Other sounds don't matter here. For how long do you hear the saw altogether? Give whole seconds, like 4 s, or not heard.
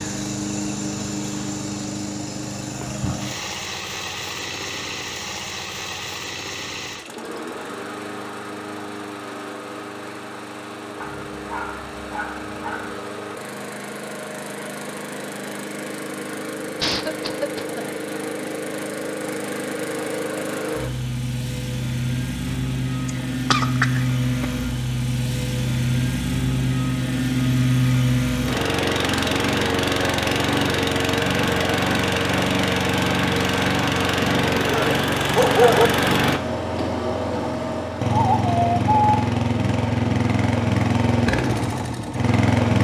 not heard.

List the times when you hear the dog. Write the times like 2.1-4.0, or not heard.
11.0-12.9, 34.6-35.9.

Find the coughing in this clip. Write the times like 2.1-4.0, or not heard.
16.8-18.0, 23.1-24.4.